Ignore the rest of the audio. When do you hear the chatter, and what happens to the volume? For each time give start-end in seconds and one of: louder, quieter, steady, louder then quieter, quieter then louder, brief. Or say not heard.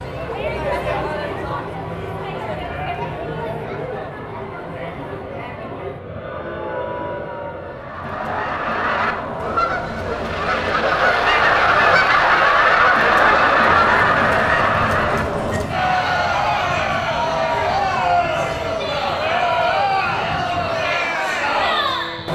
0.0-22.2 louder.